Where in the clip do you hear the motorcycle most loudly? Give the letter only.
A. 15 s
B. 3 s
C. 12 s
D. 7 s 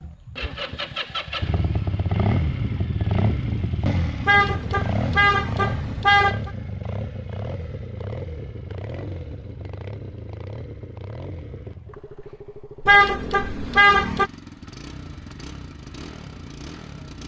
B.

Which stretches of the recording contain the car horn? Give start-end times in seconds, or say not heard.
4.2-6.5, 12.8-14.3.